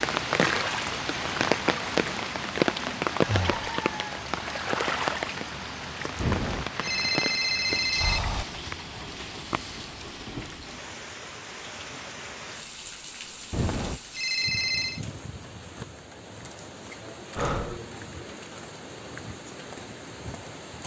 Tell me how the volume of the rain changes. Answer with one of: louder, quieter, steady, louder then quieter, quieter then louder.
quieter.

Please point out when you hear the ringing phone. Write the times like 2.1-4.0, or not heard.
6.2-8.2, 13.5-15.0.